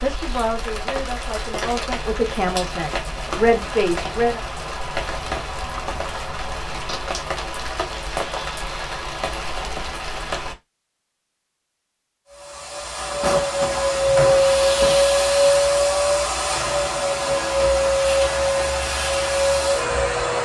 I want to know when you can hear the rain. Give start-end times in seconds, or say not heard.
0.0-10.6.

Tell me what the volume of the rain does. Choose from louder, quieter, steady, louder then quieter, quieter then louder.
steady.